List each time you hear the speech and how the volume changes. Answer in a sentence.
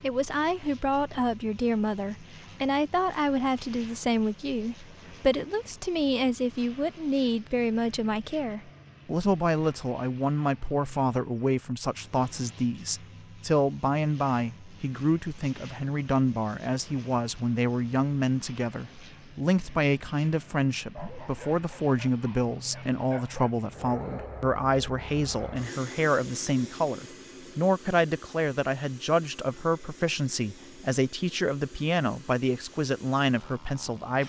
You can hear the speech from 0.0 to 34.2 s, at a steady volume.